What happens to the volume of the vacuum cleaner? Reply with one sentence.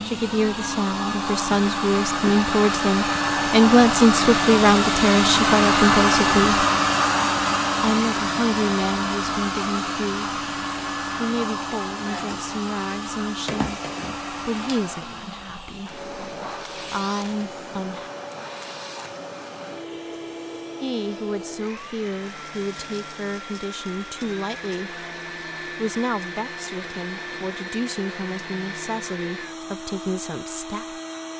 The volume of the vacuum cleaner goes down.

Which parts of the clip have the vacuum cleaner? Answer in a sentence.
You can hear the vacuum cleaner from 0.0 to 31.3 s.